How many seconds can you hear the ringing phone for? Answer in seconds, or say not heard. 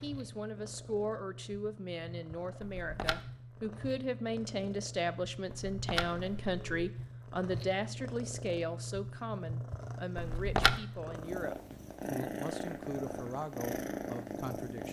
3 s.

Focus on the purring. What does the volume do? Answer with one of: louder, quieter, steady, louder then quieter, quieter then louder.
louder.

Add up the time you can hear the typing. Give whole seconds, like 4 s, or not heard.
not heard.